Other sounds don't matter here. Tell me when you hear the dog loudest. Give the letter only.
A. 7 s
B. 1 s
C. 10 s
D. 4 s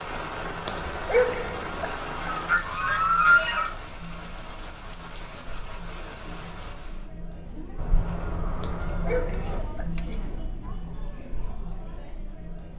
B.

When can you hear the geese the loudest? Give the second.
3 s.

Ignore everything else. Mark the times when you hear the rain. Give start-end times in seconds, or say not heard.
0.0-7.2.